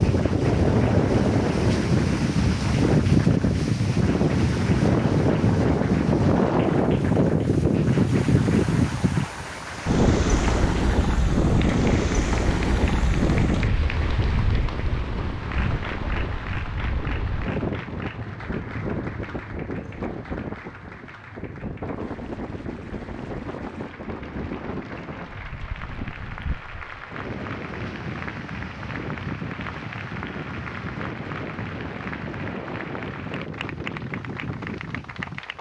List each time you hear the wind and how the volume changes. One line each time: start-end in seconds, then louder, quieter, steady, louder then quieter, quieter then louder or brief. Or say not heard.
0.0-35.5 quieter.